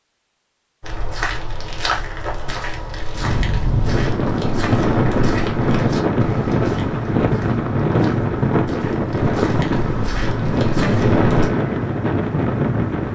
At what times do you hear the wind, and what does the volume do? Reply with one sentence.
You can hear the wind from 3.1 to 13.0 s, at a steady volume.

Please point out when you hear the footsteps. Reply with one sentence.
You can hear the footsteps from 0.8 to 11.5 s.